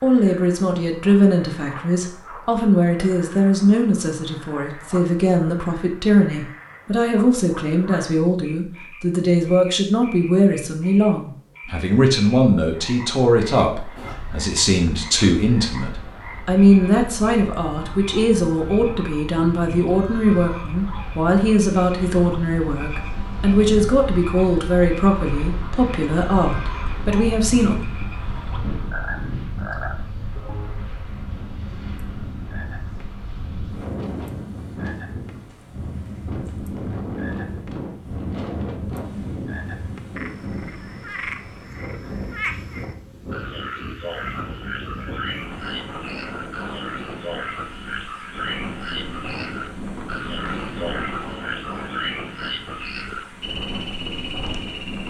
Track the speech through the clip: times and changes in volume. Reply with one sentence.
You can hear the speech from 0.0 to 27.8 s, at a steady volume.